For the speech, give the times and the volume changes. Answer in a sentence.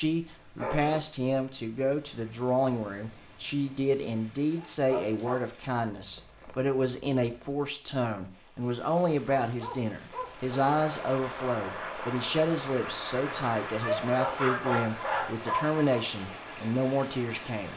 You can hear the speech from 0.0 to 17.7 s, at a steady volume.